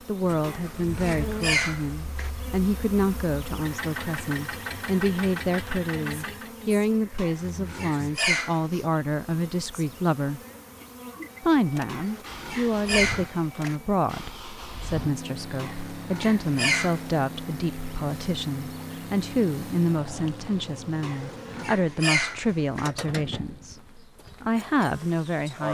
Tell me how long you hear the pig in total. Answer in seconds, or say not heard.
9 s.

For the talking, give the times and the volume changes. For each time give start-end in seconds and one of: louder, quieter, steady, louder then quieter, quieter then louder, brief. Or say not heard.
0.1-10.4 steady
11.4-25.6 steady.